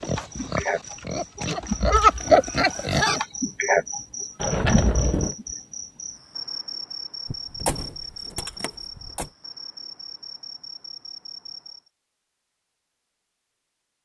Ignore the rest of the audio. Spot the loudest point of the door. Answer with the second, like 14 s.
5 s.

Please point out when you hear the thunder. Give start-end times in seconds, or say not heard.
not heard.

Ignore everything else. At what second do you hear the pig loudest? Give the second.
2 s.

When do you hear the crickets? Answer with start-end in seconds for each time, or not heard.
0.0-11.8.